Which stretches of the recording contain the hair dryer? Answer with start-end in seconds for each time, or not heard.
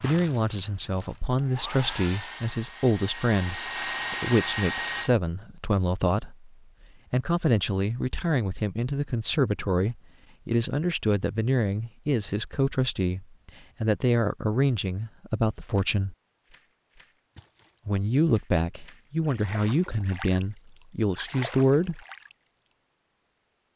0.0-5.1.